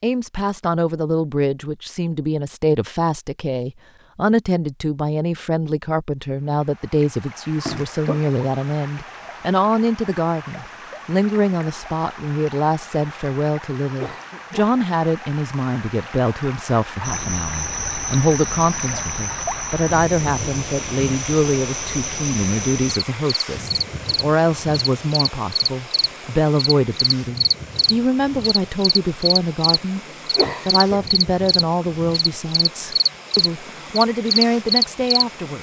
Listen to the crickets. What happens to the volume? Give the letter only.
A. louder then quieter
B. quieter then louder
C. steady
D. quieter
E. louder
E.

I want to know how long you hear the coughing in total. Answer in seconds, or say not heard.
2 s.